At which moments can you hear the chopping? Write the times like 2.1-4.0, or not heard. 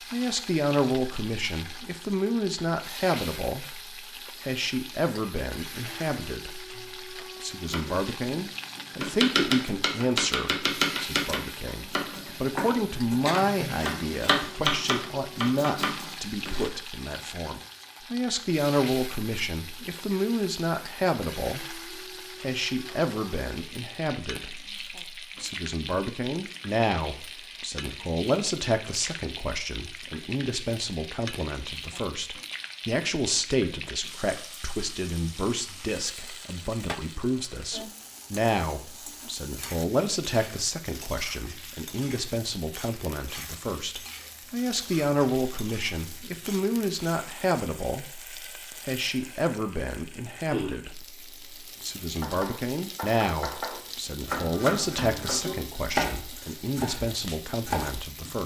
7.7-16.7, 52.1-58.4.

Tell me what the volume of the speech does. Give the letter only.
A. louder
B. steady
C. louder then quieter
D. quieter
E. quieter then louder
B.